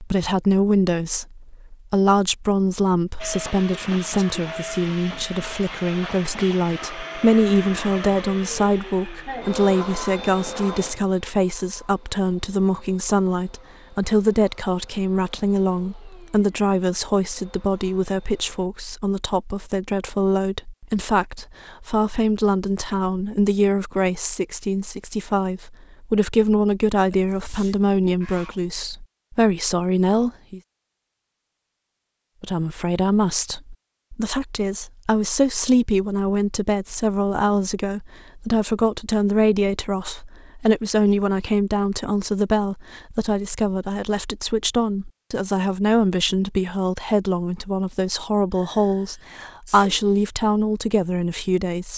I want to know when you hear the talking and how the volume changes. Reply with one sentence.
The talking can be heard from 0.0 to 30.6 s, at a steady volume; and from 32.4 to 51.9 s, at a steady volume.